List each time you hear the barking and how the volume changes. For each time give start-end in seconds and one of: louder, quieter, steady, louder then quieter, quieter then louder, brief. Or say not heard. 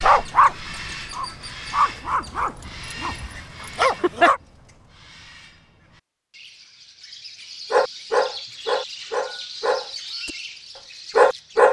0.0-4.4 quieter then louder
7.7-10.3 brief
11.2-11.6 brief.